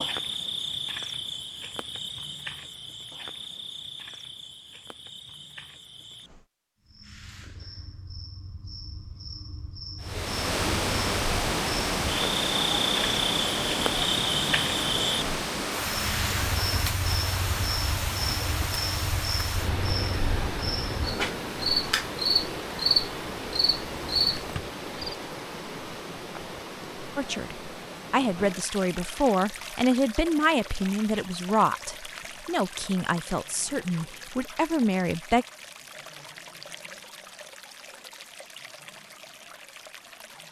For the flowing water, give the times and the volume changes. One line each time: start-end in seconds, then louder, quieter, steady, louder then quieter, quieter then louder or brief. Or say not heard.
10.0-40.4 quieter.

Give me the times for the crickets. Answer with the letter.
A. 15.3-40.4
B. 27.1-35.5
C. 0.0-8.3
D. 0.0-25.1
D.